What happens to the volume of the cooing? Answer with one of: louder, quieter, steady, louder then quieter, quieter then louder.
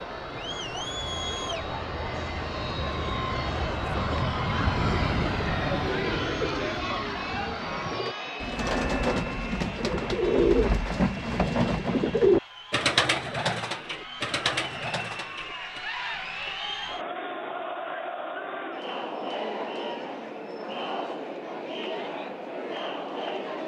louder then quieter.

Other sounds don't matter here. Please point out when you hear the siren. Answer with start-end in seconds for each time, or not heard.
not heard.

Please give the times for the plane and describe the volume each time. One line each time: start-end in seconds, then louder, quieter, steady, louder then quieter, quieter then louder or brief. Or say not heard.
0.0-12.2 louder then quieter.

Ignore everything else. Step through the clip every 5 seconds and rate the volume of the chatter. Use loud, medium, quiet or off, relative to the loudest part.
loud, loud, medium, loud, loud.